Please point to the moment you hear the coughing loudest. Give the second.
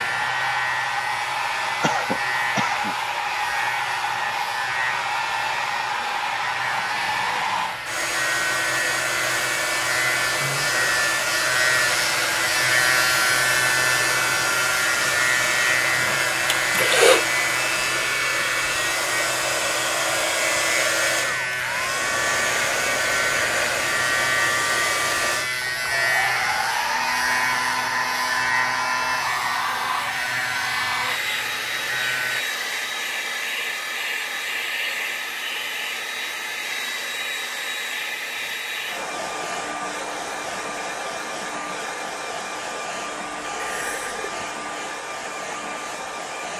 17 s.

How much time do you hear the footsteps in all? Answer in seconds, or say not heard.
not heard.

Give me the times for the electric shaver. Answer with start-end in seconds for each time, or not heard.
0.0-32.5.